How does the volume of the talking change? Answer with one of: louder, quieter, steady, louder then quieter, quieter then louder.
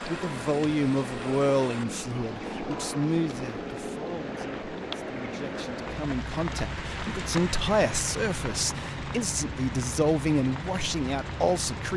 quieter then louder.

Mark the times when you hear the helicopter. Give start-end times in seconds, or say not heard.
0.0-11.9.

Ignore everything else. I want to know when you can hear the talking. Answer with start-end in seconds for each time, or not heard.
0.0-11.9.